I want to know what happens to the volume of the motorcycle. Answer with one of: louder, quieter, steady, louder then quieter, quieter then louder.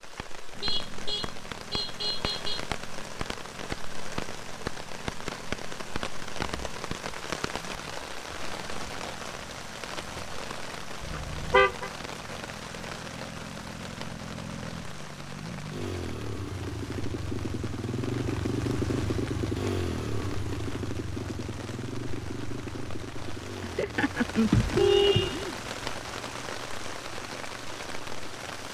louder then quieter.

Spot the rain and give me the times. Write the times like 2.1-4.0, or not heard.
0.0-28.6.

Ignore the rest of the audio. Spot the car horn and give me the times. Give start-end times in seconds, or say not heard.
0.1-2.6, 11.0-11.9, 23.6-25.6.